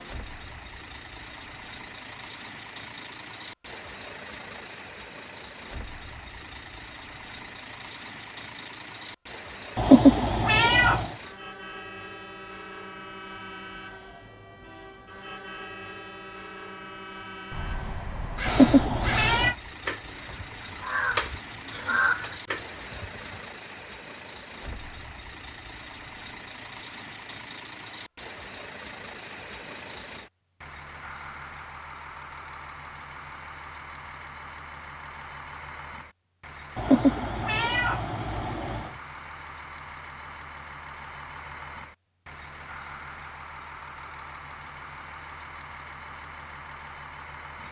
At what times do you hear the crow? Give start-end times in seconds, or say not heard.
17.5-23.4.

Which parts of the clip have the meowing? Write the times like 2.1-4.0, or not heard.
9.8-11.1, 18.4-19.6, 36.8-38.9.